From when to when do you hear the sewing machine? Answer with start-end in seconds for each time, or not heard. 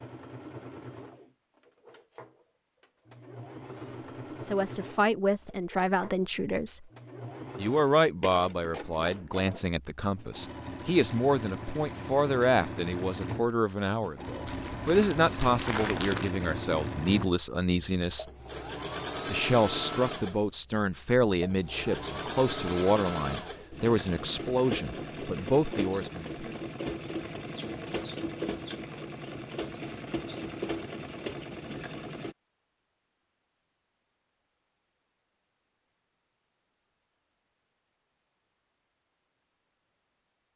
0.0-32.4.